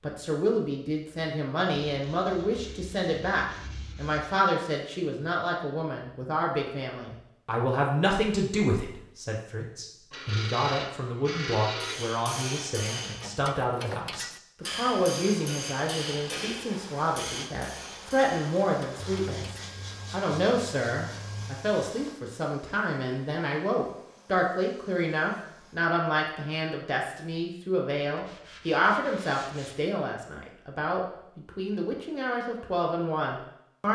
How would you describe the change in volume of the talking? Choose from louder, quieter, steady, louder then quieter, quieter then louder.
steady.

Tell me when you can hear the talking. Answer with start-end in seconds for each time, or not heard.
0.0-33.8.